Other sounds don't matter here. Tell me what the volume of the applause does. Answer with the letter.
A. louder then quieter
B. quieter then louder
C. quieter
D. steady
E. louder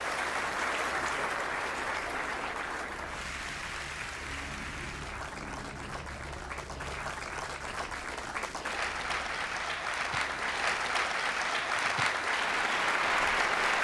B.